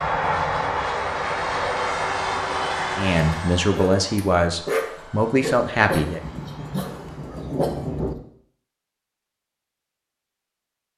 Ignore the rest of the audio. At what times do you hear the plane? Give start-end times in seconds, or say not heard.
0.0-7.4.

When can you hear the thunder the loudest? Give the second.
8 s.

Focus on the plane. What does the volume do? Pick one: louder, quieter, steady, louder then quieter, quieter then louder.
quieter.